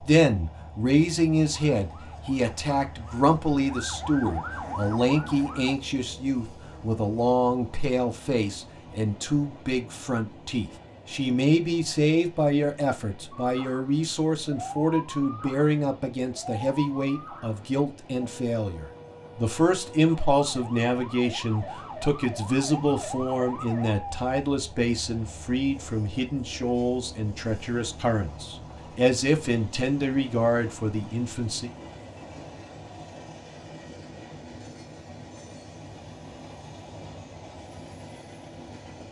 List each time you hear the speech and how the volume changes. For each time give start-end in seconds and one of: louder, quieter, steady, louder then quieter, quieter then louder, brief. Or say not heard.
0.0-31.7 steady.